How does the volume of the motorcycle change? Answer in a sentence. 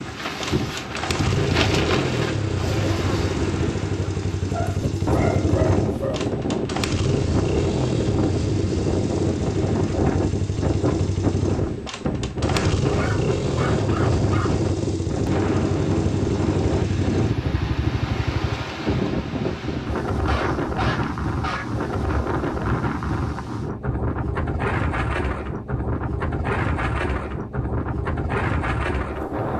The loudness of the motorcycle stays about the same.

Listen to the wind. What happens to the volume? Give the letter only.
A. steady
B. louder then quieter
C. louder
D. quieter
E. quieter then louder
A.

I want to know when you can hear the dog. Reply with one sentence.
The dog can be heard from 4.5 to 6.2 s, from 12.8 to 14.7 s and from 20.1 to 22.2 s.